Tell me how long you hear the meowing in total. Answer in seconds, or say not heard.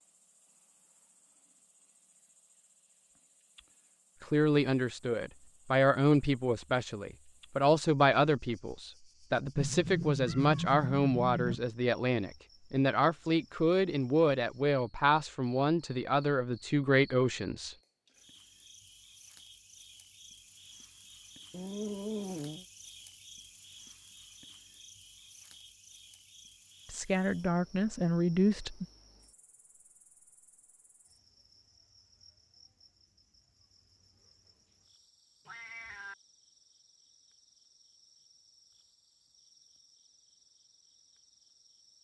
4 s.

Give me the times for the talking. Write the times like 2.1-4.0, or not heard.
4.2-17.8, 26.9-28.9.